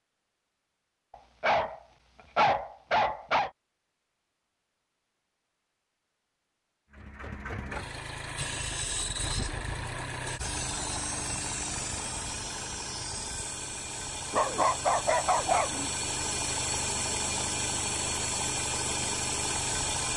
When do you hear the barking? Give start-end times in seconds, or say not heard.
1.1-3.5, 14.3-15.9.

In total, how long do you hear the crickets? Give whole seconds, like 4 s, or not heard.
not heard.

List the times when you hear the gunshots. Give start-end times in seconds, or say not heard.
not heard.